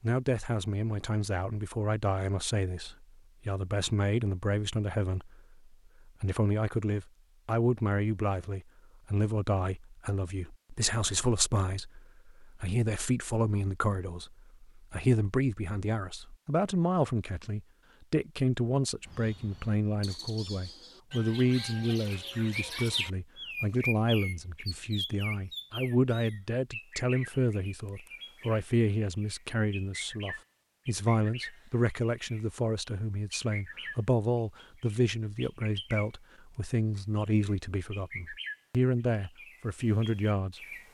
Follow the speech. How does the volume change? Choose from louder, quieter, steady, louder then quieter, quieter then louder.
steady.